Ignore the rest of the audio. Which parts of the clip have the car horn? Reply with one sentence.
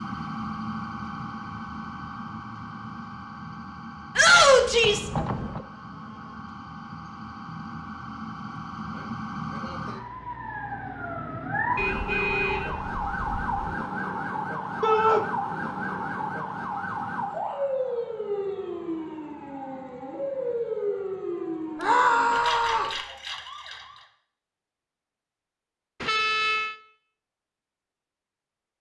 The car horn can be heard from 4.8 to 5.7 s, from 11.8 to 13.7 s and from 26.0 to 26.8 s.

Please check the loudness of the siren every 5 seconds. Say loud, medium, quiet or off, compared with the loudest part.
medium, medium, loud, loud, loud, off.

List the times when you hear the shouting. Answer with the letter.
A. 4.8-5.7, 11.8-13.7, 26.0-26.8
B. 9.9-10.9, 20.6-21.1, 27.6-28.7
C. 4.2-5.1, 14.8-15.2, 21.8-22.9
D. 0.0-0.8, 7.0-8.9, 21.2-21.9
C.